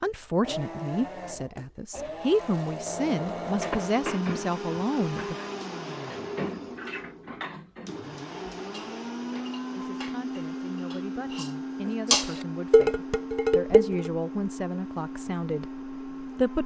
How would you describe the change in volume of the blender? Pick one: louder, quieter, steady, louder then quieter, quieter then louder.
steady.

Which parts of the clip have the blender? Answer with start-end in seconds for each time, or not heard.
0.0-16.6.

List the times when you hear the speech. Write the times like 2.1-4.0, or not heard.
0.0-5.3, 9.7-16.6.